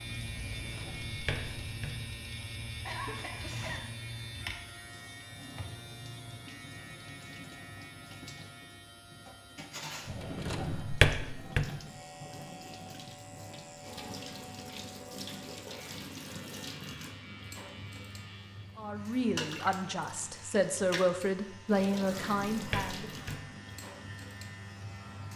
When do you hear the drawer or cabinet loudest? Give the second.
11 s.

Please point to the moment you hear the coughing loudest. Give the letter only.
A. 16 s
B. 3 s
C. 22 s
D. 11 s
B.